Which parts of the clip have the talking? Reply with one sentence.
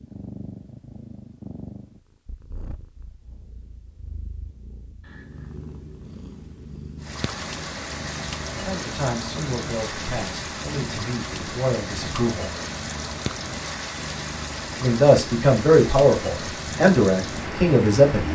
You can hear the talking from 8.5 to 12.6 s and from 14.8 to 18.3 s.